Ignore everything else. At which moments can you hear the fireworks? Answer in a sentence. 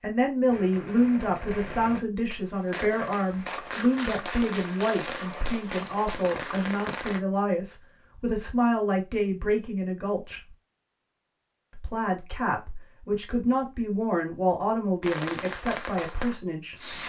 The fireworks can be heard from 0.5 to 7.2 s and from 15.0 to 17.0 s.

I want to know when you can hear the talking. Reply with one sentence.
The talking can be heard from 0.0 to 10.6 s and from 11.8 to 16.9 s.